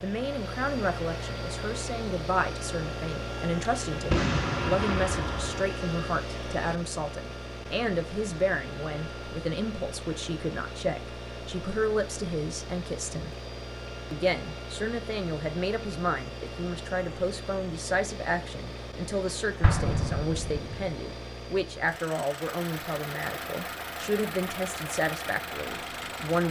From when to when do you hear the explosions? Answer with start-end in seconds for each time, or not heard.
4.1-5.7, 19.6-20.9.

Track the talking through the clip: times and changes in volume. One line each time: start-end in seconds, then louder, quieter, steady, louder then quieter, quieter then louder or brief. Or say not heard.
0.0-13.3 steady
14.1-26.4 steady.